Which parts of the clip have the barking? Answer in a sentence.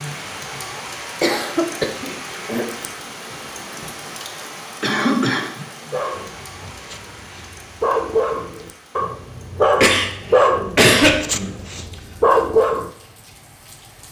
You can hear the barking from 5.9 to 12.9 s.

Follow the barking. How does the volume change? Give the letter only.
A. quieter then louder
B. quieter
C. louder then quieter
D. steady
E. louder
E.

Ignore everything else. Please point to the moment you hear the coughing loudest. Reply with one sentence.
The loudest moment of the coughing is at 11 seconds.